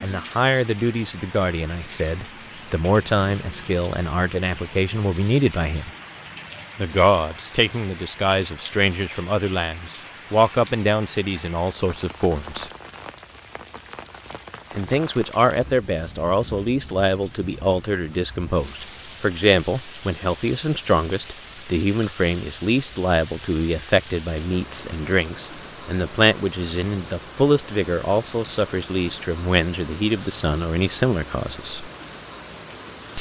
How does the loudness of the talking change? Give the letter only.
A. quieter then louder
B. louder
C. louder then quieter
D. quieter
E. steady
E.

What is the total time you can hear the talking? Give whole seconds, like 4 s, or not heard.
29 s.